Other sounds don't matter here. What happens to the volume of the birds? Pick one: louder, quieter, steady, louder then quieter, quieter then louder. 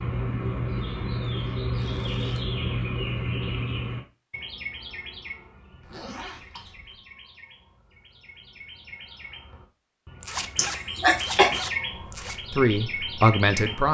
quieter then louder.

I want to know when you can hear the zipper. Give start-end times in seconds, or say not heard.
1.8-2.4, 5.8-7.0, 10.2-12.3.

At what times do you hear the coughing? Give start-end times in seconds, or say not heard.
10.6-11.5.